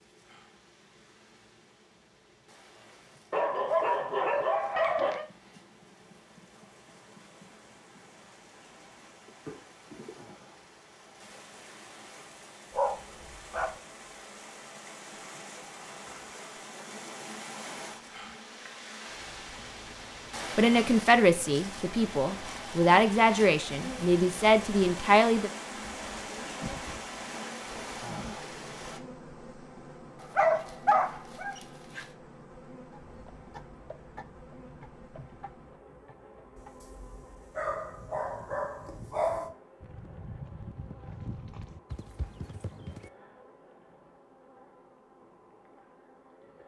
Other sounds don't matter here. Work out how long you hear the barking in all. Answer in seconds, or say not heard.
8 s.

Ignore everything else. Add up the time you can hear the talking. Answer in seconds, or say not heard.
5 s.